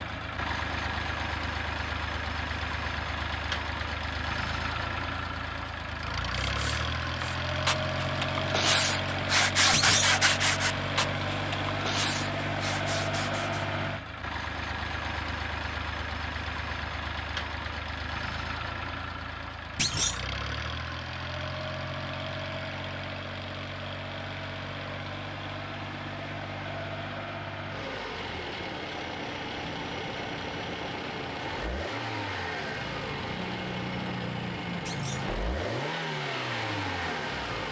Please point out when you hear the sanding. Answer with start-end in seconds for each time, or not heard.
6.5-13.8.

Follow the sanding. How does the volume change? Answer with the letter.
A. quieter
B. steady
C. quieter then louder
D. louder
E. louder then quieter
E.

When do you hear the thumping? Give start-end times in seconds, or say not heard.
9.7-10.2, 19.8-20.2, 34.9-35.3.